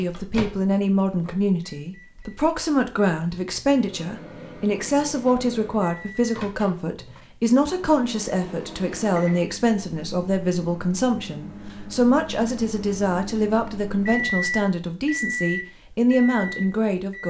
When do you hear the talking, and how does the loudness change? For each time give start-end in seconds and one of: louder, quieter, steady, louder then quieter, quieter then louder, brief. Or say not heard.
0.0-17.2 steady.